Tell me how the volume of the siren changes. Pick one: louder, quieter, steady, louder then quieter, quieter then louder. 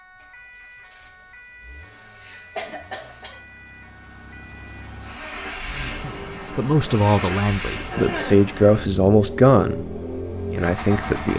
steady.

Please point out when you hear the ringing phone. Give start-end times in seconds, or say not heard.
not heard.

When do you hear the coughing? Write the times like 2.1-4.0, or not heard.
2.1-3.4, 7.9-8.5.